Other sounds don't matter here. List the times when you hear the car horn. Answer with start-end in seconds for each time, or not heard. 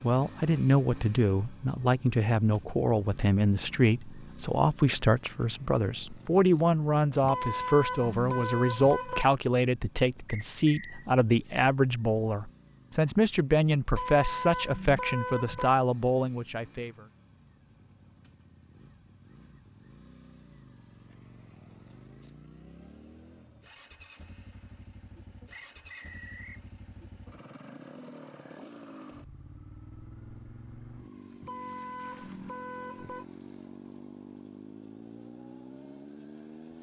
7.2-9.2, 13.9-15.8, 31.4-33.2.